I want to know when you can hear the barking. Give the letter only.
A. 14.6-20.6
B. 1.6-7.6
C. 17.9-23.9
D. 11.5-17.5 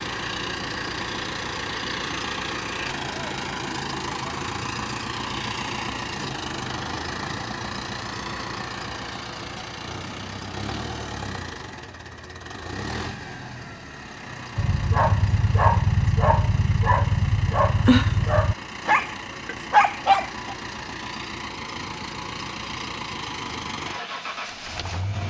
A.